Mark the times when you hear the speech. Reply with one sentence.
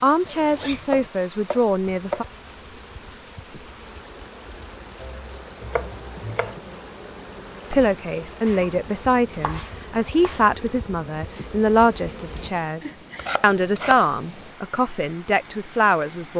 The speech can be heard from 0.0 to 2.2 s and from 7.7 to 16.3 s.